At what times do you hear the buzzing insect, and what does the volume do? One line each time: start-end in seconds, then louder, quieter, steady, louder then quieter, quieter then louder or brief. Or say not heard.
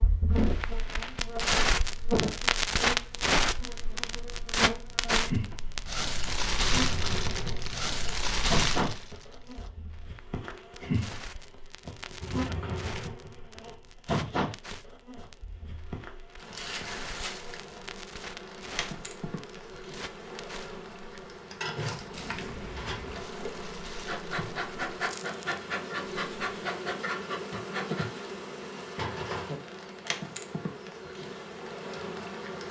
0.0-32.6 steady.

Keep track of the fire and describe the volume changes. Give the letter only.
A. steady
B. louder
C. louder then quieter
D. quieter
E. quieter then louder
D.